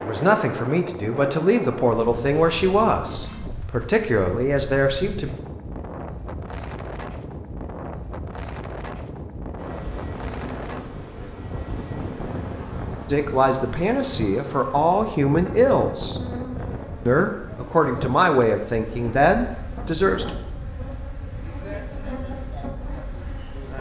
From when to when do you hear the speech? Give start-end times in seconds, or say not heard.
0.0-5.3, 13.1-16.2, 17.1-20.3.